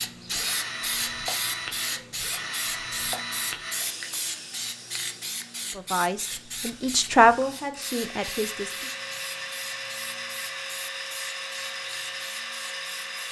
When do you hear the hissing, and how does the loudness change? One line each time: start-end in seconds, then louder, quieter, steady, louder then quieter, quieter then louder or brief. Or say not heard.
0.0-13.2 quieter.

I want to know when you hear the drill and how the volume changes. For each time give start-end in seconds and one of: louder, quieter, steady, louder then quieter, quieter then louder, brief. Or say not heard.
0.2-13.2 quieter then louder.